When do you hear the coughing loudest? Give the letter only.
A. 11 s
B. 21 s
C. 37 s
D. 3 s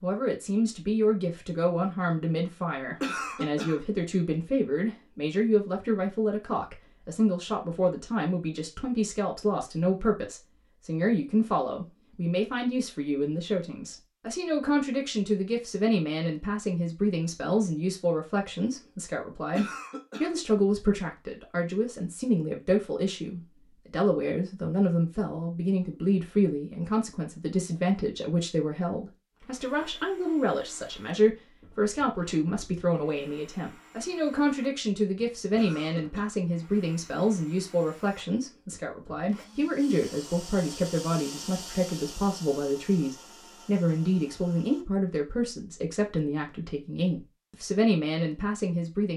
D.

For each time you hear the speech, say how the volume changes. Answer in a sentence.
The speech can be heard from 0.0 to 49.1 s, at a steady volume.